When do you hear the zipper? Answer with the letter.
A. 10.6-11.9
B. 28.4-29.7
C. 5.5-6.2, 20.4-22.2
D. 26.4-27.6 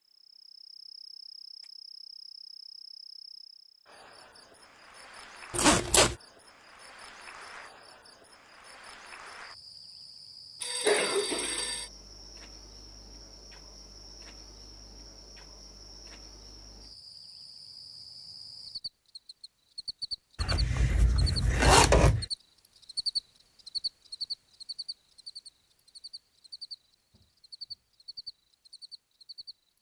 C.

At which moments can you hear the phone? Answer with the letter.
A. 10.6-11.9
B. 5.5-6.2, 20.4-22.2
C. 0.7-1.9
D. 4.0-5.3
A.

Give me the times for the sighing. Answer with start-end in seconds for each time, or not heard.
not heard.